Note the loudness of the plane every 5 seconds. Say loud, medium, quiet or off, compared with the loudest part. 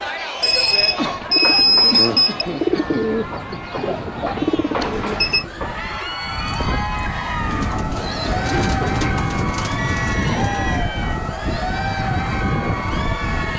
quiet, loud, loud.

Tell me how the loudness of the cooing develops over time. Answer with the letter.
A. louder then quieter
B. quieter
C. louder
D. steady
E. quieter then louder
B.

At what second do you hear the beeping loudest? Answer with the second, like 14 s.
2 s.